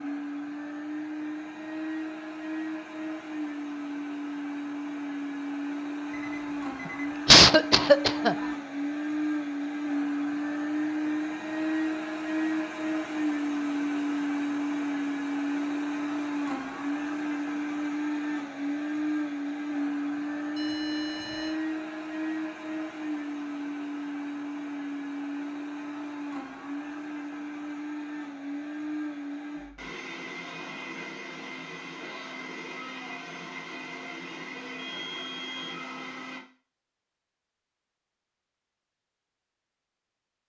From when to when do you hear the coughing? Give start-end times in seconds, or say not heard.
7.2-8.3.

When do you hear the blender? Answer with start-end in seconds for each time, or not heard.
0.0-36.4.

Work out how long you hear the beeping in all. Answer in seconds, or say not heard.
3 s.